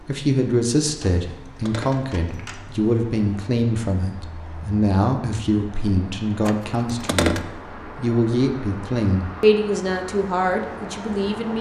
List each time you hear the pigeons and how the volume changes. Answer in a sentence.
The pigeons can't be heard in this clip.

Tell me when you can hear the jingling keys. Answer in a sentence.
You can hear the jingling keys from 1.0 to 2.6 s and from 6.5 to 7.4 s.